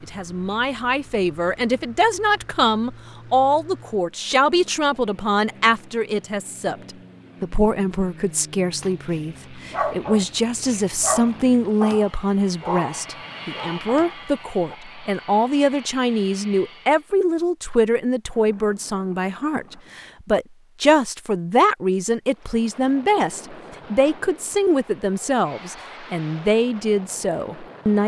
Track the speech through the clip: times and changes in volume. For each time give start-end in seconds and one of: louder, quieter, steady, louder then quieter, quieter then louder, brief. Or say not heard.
0.0-28.0 steady.